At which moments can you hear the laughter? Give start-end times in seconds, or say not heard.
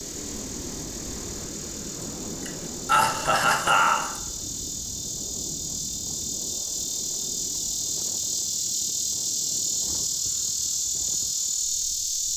2.5-4.2.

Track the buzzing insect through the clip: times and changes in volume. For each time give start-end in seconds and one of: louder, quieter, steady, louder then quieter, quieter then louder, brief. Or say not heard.
0.0-12.3 louder.